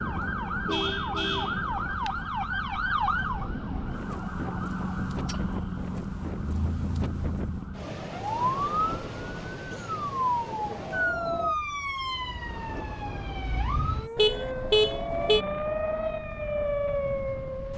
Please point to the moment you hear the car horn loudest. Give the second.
15 s.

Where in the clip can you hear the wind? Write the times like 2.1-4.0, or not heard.
0.0-17.7.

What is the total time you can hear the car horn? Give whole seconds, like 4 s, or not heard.
3 s.